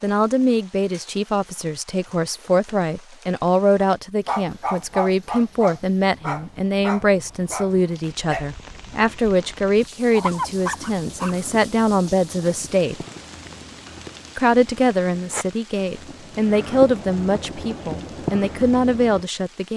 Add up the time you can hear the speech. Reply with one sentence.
You can hear the speech for 18 seconds altogether.